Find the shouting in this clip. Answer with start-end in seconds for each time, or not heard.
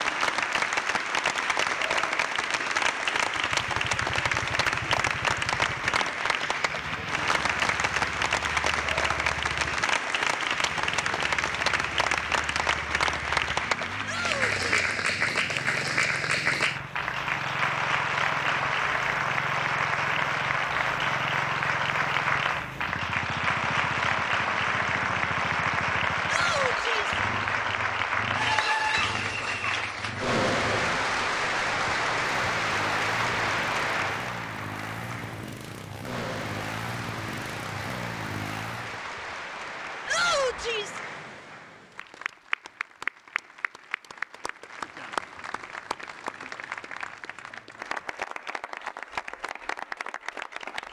14.0-14.9, 26.2-27.2, 40.0-41.0.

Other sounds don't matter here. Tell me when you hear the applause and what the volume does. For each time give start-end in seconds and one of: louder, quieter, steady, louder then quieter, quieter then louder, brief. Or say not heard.
0.0-50.8 quieter.